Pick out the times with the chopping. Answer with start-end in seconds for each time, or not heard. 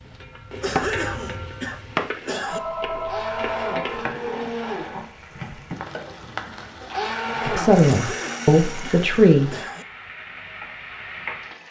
0.0-2.1.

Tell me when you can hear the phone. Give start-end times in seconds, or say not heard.
2.5-4.1.